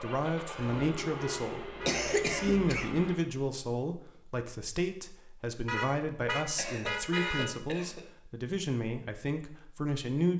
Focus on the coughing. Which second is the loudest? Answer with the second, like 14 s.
2 s.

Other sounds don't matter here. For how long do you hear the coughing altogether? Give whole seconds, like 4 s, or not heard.
3 s.